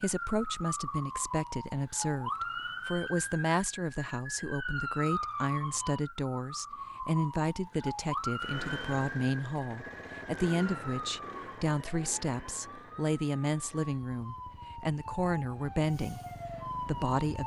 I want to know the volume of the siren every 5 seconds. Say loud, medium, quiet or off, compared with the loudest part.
loud, loud, medium, loud.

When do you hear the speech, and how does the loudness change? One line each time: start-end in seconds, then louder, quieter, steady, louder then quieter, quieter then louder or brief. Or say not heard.
0.0-16.2 steady
16.8-17.4 brief.